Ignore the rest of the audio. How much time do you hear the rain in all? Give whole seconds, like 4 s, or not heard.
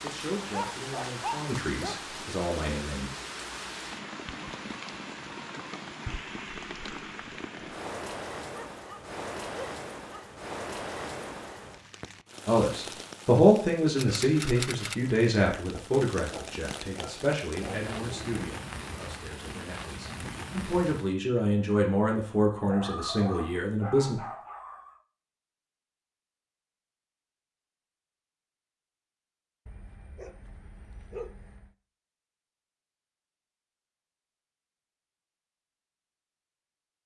21 s.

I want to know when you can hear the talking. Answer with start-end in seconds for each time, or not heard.
0.0-3.1, 12.4-24.1.